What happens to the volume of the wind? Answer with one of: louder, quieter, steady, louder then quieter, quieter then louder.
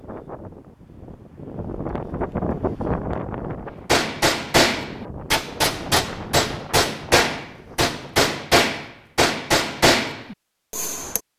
louder then quieter.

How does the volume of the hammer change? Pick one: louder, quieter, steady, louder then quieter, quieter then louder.
steady.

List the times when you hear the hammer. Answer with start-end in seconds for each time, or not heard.
3.9-11.2.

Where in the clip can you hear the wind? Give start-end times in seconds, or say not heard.
0.0-8.2.